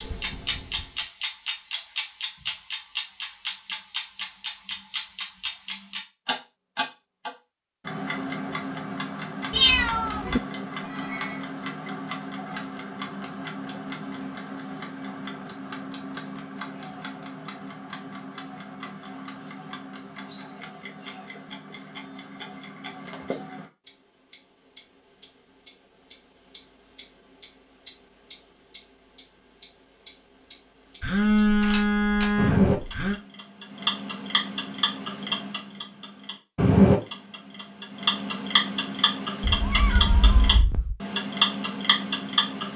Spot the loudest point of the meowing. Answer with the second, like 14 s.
10 s.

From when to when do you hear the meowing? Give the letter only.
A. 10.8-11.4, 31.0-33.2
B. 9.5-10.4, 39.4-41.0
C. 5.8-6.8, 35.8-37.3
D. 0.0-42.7
B.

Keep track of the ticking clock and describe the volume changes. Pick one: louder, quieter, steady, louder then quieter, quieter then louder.
quieter then louder.